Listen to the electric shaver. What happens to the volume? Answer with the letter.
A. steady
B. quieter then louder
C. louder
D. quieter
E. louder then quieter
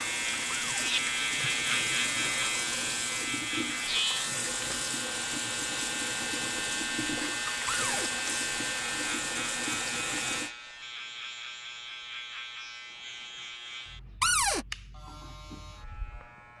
D.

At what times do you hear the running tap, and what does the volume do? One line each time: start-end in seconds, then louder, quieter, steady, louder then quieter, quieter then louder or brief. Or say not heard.
0.0-10.5 steady.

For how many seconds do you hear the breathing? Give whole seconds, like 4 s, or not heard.
not heard.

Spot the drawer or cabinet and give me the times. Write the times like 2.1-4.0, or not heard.
0.5-0.9, 7.7-8.1, 14.2-14.7.